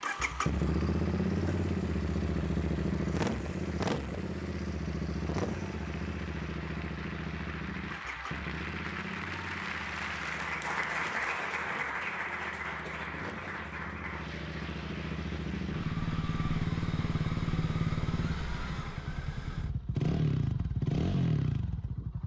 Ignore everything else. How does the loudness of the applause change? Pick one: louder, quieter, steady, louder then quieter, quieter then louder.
louder then quieter.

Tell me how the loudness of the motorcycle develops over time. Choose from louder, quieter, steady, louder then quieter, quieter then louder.
quieter then louder.